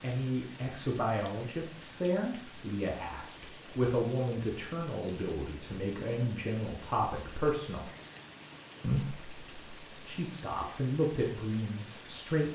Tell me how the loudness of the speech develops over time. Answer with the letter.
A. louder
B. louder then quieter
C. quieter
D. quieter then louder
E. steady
E.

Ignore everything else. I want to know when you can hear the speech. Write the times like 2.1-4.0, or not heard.
0.0-7.9, 8.8-12.4.